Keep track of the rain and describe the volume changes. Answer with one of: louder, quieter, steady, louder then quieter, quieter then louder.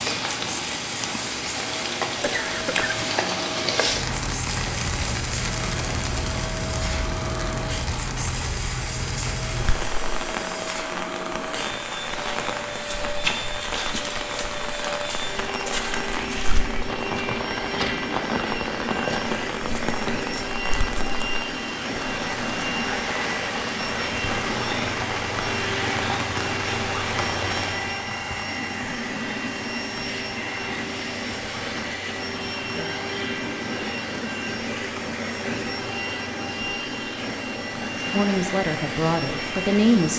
quieter.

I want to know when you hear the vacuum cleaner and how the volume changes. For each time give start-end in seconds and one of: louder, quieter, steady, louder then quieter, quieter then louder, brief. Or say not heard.
0.1-40.1 steady.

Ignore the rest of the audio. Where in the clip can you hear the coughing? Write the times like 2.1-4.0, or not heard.
2.2-3.1.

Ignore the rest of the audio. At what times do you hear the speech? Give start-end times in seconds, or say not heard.
38.1-40.1.